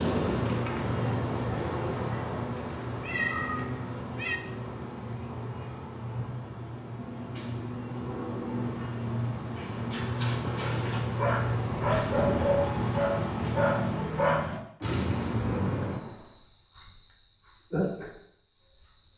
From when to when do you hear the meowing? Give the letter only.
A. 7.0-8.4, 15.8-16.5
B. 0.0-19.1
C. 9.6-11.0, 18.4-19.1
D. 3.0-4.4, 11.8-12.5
D.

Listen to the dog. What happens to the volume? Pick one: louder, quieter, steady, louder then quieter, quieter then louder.
louder then quieter.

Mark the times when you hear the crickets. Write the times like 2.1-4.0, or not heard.
0.0-19.1.